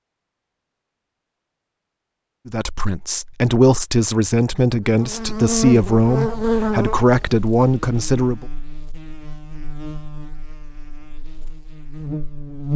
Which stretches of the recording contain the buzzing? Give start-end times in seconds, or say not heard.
4.8-12.7.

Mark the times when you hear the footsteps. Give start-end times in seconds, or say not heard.
not heard.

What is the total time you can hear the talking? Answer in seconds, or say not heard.
6 s.